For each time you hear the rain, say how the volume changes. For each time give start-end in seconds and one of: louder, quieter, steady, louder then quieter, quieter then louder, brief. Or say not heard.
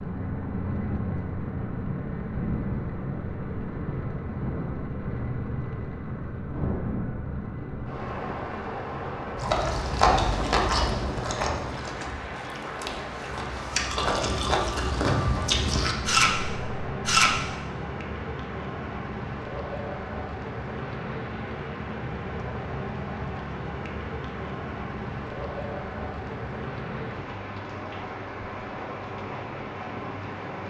0.0-30.6 steady.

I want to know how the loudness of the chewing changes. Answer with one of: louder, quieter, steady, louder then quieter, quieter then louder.
quieter then louder.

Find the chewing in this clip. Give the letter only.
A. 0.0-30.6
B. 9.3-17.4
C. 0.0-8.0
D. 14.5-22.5
B.